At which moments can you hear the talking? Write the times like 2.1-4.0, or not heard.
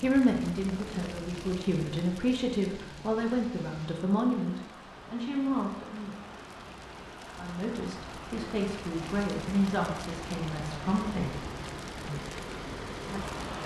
0.0-6.2, 7.3-11.4.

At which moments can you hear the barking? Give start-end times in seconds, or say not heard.
not heard.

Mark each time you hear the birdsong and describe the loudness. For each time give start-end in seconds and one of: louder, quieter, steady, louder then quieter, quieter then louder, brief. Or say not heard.
not heard.